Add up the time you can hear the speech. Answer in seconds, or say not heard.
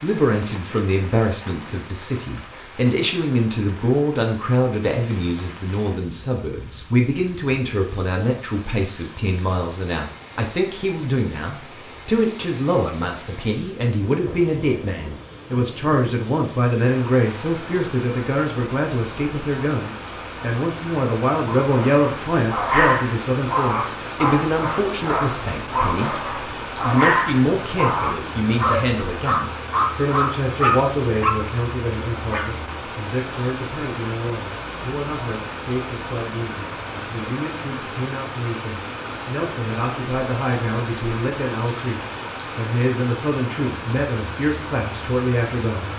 46 s.